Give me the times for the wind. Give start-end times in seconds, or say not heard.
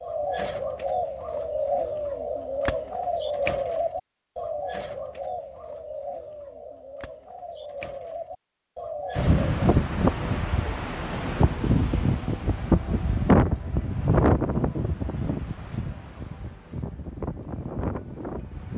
9.2-18.7.